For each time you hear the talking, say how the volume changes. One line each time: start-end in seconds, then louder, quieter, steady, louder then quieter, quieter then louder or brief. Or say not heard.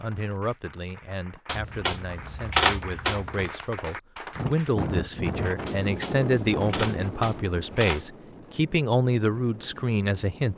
0.0-10.5 louder.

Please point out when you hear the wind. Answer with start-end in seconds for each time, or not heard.
4.3-10.5.